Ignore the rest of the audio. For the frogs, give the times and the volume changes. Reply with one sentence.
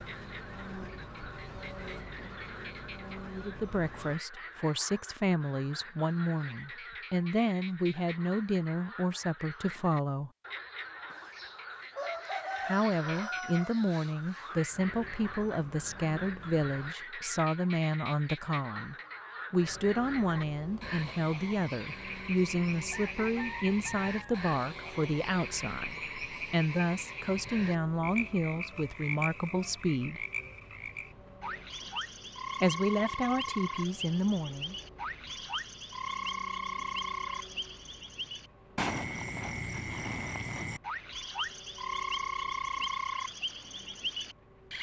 You can hear the frogs from 0.0 to 44.7 s, getting louder.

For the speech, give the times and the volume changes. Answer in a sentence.
The speech can be heard from 3.4 to 10.3 s, at a steady volume; from 12.7 to 30.2 s, at a steady volume; and briefly from 32.6 to 34.8 s.